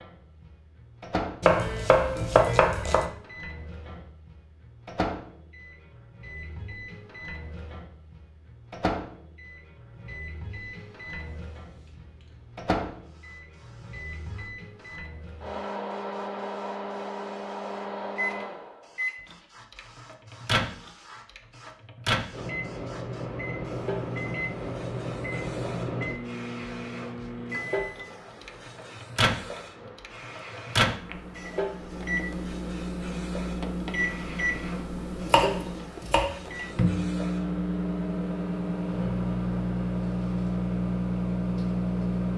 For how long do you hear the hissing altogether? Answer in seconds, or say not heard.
27 s.